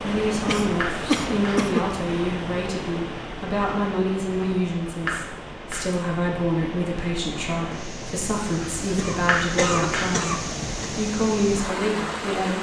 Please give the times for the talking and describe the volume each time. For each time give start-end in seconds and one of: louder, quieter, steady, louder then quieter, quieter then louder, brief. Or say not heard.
0.0-12.5 steady.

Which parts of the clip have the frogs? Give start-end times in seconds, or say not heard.
not heard.